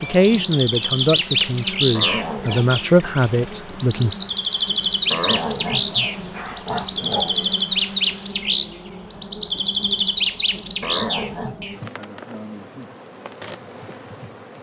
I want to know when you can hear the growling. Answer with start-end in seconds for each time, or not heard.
1.9-2.8, 5.1-7.6, 10.8-11.7.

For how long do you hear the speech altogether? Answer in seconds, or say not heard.
4 s.